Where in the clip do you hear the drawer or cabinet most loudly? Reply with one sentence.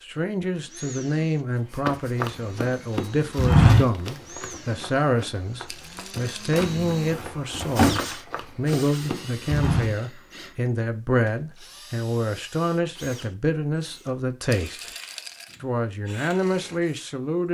The volume of the drawer or cabinet peaks at 8 seconds.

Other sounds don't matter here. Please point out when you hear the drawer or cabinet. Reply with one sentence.
You can hear the drawer or cabinet from 6.5 to 8.0 s.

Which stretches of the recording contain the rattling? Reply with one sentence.
You can hear the rattling from 5.7 to 6.5 s and from 14.5 to 15.6 s.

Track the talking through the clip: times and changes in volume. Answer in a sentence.
The talking can be heard from 0.0 to 14.8 s, at a steady volume; and briefly from 15.6 to 17.4 s.